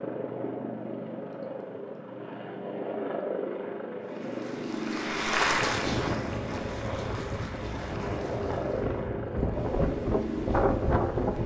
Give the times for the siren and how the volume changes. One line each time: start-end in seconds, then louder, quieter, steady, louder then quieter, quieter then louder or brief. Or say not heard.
not heard.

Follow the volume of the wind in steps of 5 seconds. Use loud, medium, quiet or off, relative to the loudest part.
off, medium, loud.